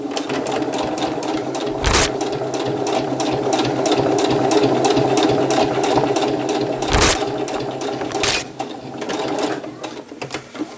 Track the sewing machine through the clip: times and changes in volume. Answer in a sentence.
The sewing machine can be heard from 0.0 to 10.7 s, getting louder then quieter.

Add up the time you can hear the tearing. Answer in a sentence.
The tearing can be heard for 2 seconds in total.